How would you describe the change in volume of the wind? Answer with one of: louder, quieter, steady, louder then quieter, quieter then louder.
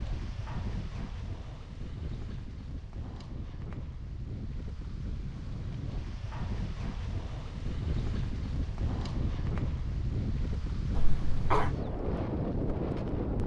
louder.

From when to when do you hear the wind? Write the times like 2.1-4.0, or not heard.
0.0-13.4.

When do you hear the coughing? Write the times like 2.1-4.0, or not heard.
10.9-11.7.